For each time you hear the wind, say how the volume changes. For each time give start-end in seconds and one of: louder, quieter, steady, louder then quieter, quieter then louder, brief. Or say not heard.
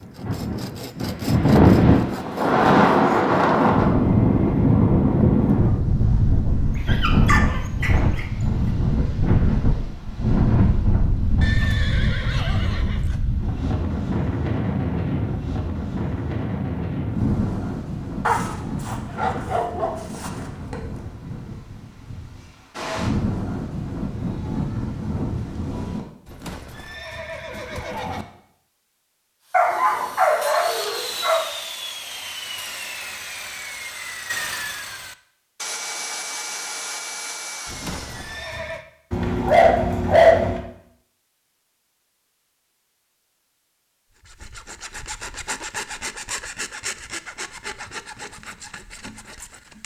0.0-26.1 quieter.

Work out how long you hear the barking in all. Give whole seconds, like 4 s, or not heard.
7 s.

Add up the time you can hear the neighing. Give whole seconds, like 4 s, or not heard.
5 s.